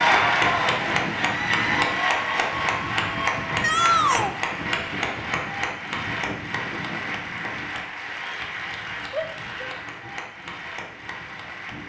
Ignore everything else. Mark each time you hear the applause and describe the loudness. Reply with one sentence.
The applause can be heard from 0.0 to 11.8 s, getting quieter.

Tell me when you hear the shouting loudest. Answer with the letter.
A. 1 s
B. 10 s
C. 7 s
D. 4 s
D.